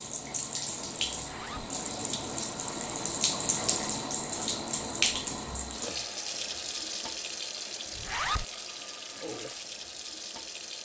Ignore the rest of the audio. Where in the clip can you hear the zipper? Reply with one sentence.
The zipper can be heard from 1.1 to 1.7 s and from 7.9 to 8.4 s.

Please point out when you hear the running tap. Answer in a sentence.
The running tap can be heard from 0.0 to 10.7 s.